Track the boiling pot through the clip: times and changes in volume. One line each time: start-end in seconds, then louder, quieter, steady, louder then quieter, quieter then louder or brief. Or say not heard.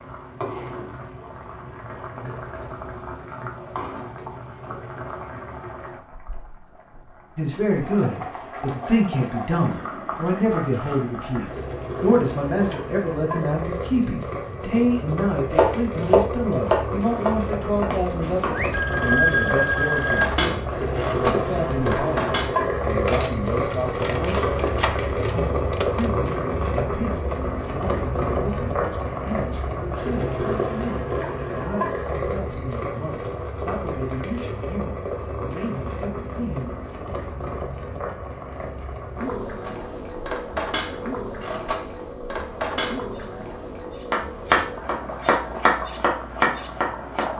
0.0-47.3 louder then quieter.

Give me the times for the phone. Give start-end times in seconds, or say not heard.
18.5-20.3.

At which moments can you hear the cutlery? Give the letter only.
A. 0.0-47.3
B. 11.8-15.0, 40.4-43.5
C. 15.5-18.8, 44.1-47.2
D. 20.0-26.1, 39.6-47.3
D.